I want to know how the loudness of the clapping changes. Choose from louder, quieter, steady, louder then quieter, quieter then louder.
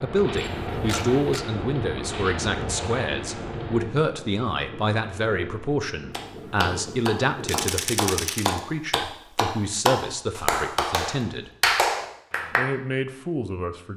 louder.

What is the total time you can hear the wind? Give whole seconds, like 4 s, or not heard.
8 s.